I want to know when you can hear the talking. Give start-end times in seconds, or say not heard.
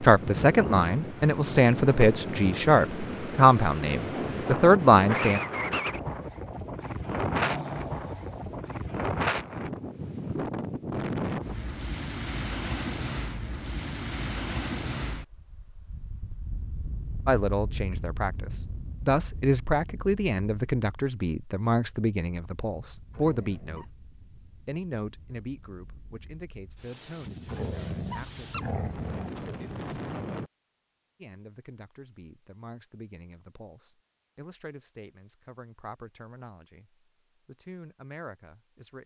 0.0-5.4, 17.2-28.5, 31.2-39.0.